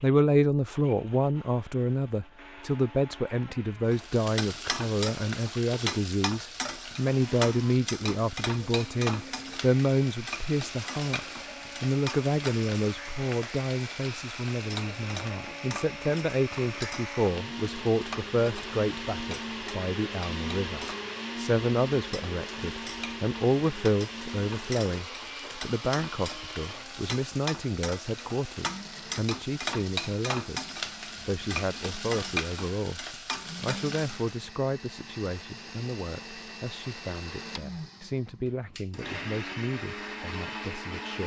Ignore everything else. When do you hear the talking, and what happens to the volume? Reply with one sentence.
The talking can be heard from 0.0 to 41.2 s, getting quieter.